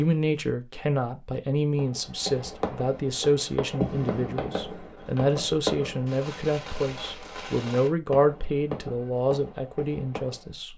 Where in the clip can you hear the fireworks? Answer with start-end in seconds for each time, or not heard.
1.8-10.6.